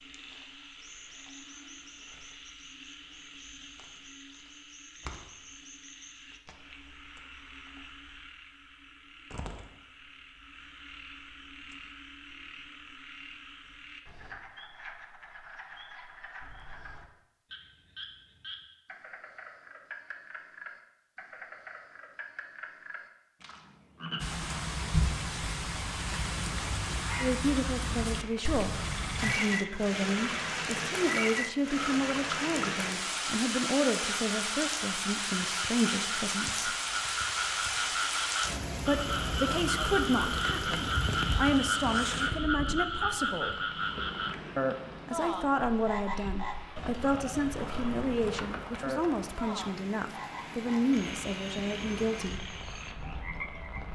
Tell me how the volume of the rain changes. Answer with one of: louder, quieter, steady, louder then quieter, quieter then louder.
quieter.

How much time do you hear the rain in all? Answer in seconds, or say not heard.
30 s.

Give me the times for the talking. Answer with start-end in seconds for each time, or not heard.
27.2-36.7, 38.9-43.5, 45.0-52.5.